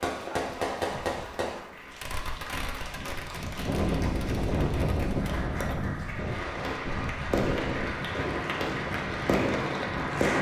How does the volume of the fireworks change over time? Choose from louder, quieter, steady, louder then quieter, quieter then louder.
quieter then louder.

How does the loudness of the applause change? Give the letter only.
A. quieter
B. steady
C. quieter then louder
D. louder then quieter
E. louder
E.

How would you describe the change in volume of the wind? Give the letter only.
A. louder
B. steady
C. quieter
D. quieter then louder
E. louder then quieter
E.